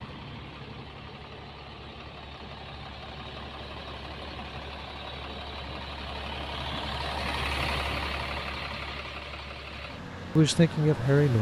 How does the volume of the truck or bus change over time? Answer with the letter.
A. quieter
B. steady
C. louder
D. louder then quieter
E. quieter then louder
D.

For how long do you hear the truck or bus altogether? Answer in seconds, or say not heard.
11 s.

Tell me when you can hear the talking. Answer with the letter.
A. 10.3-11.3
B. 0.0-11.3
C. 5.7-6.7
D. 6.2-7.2
A.